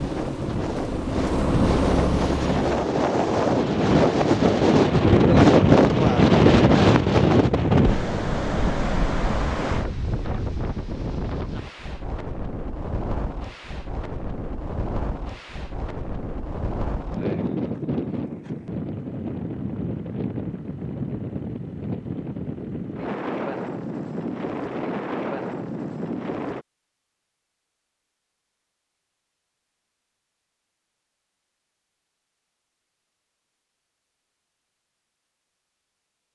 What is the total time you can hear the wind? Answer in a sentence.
You can hear the wind for 27 seconds altogether.